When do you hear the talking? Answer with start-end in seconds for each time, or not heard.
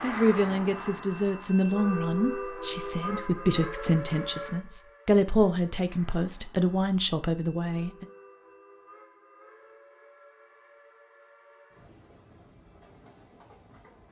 0.0-8.1.